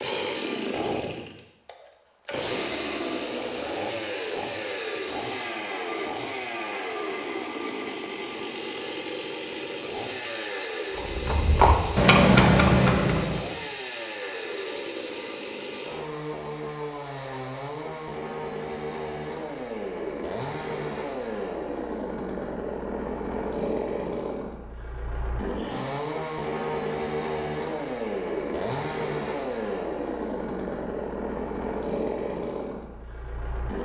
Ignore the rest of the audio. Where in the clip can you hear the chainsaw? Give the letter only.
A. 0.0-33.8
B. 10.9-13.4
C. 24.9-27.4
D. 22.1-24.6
A.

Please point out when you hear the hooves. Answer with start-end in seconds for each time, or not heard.
10.9-13.4.